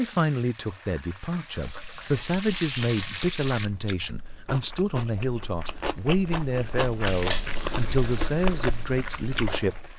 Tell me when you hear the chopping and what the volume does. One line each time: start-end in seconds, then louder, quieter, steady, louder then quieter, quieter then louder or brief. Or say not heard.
not heard.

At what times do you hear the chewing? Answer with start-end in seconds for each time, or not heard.
1.6-9.9.